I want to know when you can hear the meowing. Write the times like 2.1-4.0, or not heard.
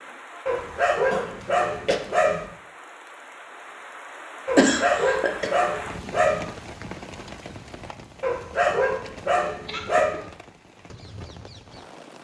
not heard.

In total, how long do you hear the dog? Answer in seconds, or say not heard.
6 s.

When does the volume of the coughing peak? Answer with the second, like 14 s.
5 s.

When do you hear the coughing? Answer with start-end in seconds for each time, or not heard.
1.1-2.0, 4.5-5.5, 9.7-10.2.